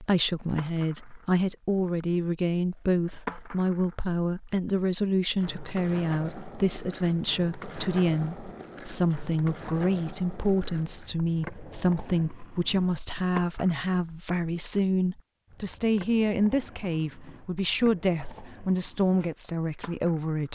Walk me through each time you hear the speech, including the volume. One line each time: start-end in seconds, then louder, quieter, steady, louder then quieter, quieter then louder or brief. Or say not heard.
0.0-20.5 steady.